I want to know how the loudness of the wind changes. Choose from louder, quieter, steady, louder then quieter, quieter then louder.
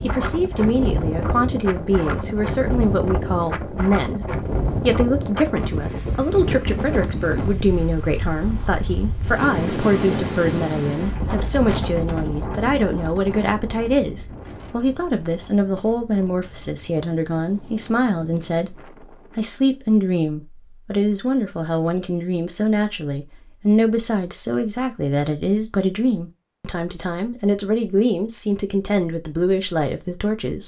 quieter.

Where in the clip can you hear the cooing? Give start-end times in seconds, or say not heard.
not heard.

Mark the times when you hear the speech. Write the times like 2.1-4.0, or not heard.
0.0-18.8, 19.4-30.6.